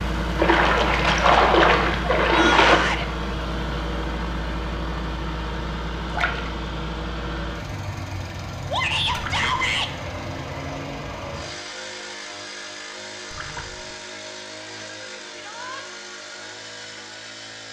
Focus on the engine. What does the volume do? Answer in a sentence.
The volume of the engine goes down.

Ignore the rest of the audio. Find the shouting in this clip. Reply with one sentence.
You can hear the shouting from 2.2 to 3.0 s, from 8.7 to 9.9 s and from 15.3 to 15.8 s.